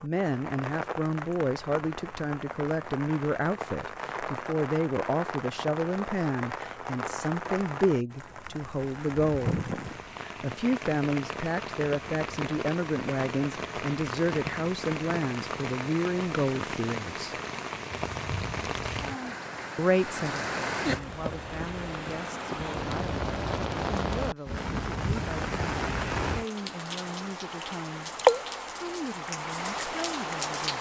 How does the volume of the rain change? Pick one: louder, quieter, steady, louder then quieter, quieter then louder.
louder.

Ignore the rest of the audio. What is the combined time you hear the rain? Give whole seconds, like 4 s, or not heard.
31 s.